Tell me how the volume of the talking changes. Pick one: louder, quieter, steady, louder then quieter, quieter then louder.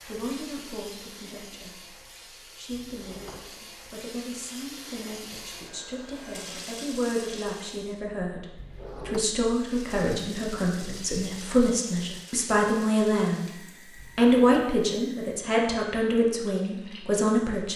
louder.